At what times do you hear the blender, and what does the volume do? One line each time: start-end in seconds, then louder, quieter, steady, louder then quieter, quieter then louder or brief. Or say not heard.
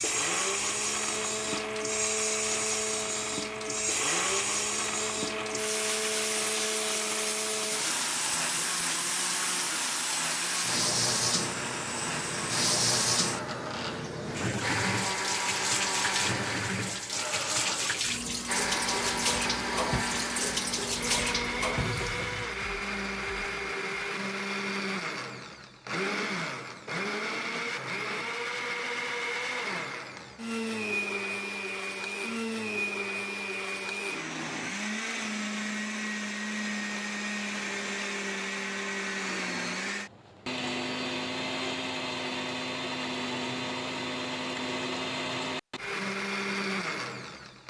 0.0-47.6 steady.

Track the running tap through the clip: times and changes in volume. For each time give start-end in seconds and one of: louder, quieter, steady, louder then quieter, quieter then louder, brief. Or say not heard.
0.0-22.4 steady.